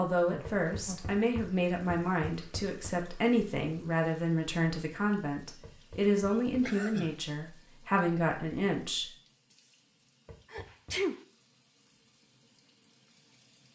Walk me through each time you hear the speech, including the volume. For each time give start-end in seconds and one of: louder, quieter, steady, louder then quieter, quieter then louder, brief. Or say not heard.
0.0-9.1 steady.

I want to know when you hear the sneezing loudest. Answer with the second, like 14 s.
11 s.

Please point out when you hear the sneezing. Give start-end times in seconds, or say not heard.
0.2-1.2, 6.6-7.1, 10.5-11.2.